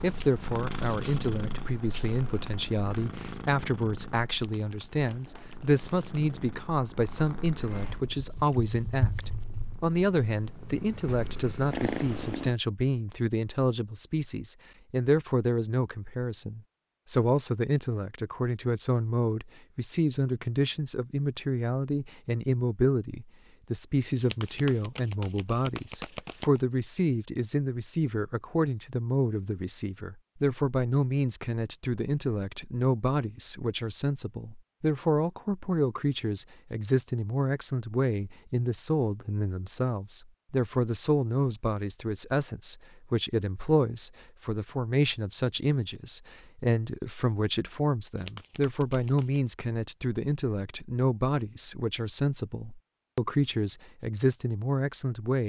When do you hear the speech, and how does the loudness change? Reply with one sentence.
The speech can be heard from 0.0 to 55.4 s, at a steady volume.